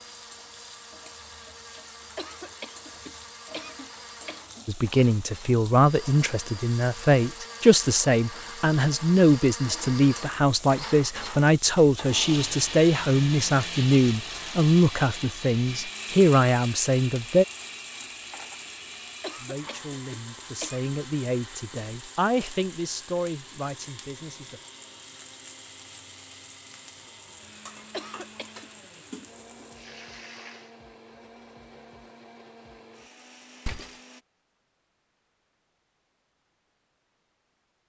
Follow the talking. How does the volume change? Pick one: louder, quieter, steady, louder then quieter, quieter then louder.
quieter.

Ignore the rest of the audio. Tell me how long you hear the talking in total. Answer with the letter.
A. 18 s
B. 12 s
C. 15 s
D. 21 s
A.